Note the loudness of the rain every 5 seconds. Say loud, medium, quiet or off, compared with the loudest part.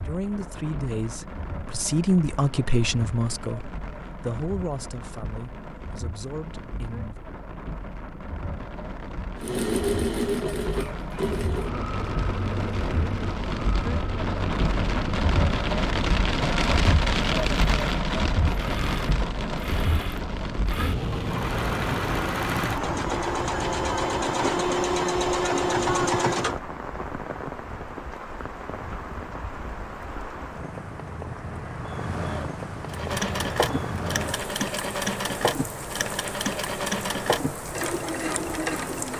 quiet, quiet, medium, loud, medium, medium, medium, medium.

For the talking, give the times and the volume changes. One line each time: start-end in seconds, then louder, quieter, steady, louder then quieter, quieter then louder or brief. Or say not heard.
0.0-7.2 louder then quieter.